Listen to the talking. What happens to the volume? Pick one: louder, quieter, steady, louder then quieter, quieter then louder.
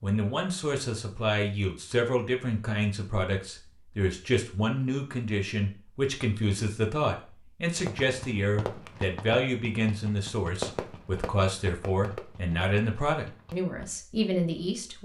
steady.